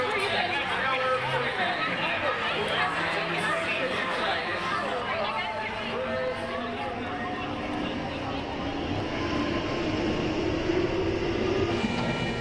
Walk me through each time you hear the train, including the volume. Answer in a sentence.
The train can be heard from 0.0 to 12.3 s, getting louder.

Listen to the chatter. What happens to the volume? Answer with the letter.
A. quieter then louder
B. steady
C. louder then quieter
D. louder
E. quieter
E.